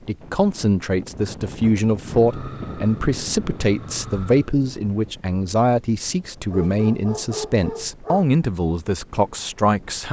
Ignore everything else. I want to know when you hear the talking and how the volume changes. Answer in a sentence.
The talking can be heard from 0.1 to 10.0 s, at a steady volume.